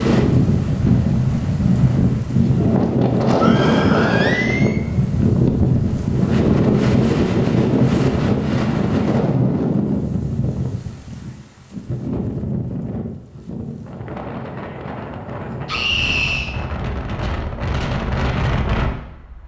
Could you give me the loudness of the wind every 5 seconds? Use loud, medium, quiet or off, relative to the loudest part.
loud, loud, medium, medium.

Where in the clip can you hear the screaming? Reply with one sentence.
You can hear the screaming from 3.4 to 4.8 s and from 15.7 to 16.6 s.